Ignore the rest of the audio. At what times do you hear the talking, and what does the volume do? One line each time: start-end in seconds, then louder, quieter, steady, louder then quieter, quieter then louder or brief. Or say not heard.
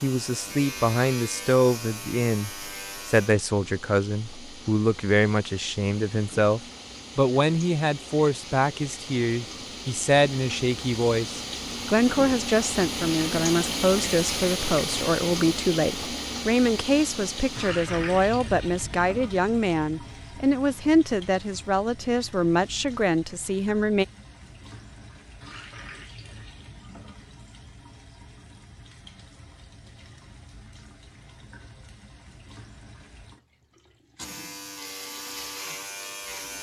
0.0-24.1 steady.